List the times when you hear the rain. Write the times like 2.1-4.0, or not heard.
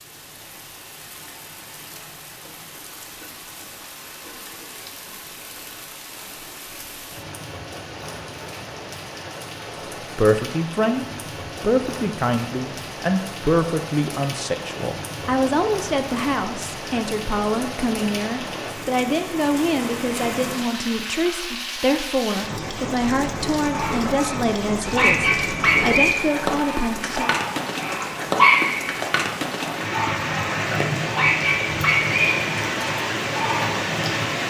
0.0-34.4.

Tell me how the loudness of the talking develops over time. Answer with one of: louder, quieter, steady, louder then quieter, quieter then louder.
steady.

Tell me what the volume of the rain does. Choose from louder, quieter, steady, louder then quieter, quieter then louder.
louder.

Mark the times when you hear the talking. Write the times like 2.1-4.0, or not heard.
10.0-27.4.